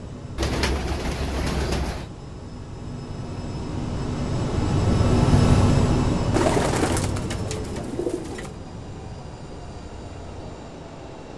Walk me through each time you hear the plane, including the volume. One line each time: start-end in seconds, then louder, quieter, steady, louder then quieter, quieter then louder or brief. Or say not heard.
0.0-11.3 louder then quieter.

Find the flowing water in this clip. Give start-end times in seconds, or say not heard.
not heard.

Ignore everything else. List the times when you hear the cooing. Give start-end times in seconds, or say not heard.
0.3-2.1, 6.3-8.6.